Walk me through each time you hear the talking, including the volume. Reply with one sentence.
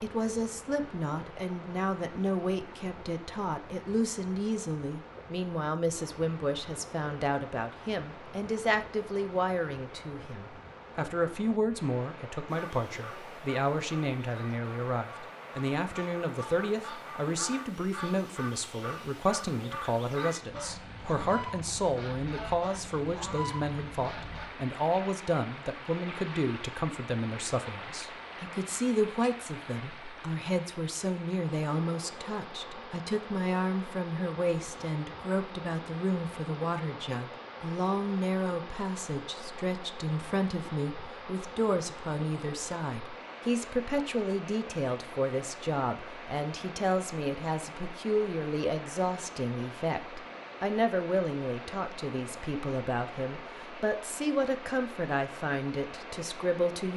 The talking can be heard from 0.0 to 56.9 s, at a steady volume.